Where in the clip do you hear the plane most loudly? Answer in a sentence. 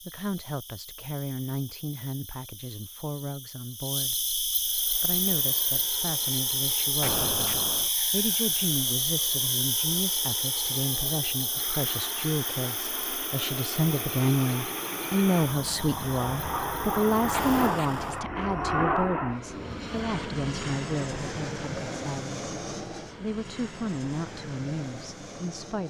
The volume of the plane peaks at 19 seconds.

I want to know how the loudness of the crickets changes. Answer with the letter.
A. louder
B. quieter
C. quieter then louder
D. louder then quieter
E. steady
D.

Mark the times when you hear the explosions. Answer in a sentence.
The explosions can be heard from 7.0 to 7.9 s and from 17.3 to 18.2 s.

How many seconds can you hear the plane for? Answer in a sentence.
The plane can be heard for 21 seconds in total.